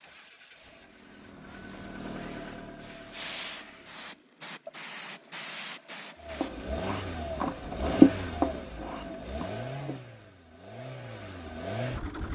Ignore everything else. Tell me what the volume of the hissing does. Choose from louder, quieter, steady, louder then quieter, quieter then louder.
louder.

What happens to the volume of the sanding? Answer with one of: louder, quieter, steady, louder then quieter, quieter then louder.
louder then quieter.